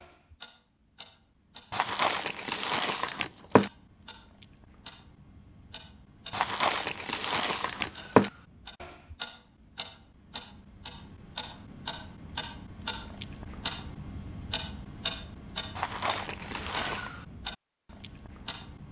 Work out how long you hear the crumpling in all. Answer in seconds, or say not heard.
5 s.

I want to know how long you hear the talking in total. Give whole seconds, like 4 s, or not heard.
not heard.